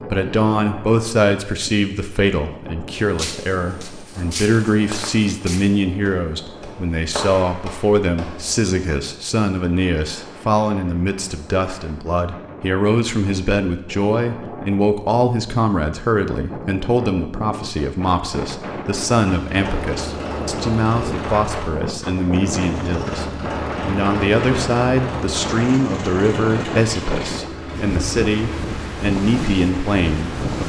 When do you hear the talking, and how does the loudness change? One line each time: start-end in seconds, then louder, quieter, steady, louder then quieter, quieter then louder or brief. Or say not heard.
0.1-30.6 steady.